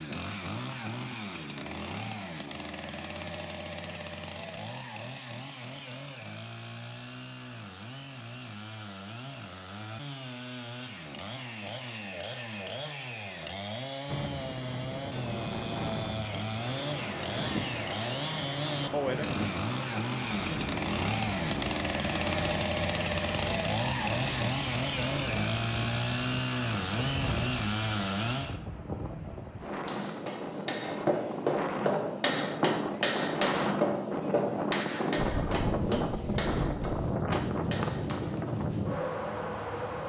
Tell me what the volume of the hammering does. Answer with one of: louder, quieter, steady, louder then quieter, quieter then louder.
quieter.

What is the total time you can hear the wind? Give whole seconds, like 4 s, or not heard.
26 s.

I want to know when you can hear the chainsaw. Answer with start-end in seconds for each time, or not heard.
0.0-28.6.